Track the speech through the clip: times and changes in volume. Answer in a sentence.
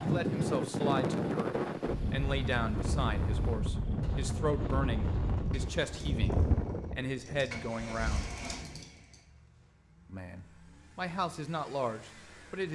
You can hear the speech from 0.0 to 8.2 s, at a steady volume; and briefly from 10.1 to 12.7 s.